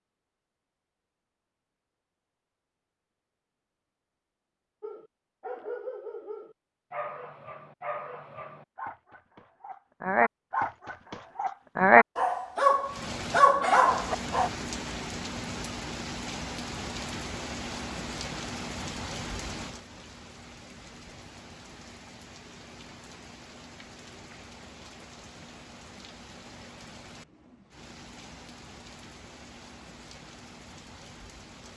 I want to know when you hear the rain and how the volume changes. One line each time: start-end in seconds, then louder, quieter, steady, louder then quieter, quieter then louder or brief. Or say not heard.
12.8-31.7 quieter.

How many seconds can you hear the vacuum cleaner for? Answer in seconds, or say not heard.
not heard.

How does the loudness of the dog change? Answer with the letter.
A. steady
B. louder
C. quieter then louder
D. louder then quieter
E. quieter
B.